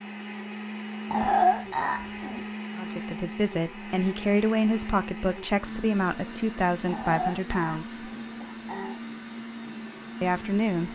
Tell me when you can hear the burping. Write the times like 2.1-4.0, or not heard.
1.1-2.4, 6.8-8.9.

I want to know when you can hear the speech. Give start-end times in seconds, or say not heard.
2.8-8.1, 10.2-10.8.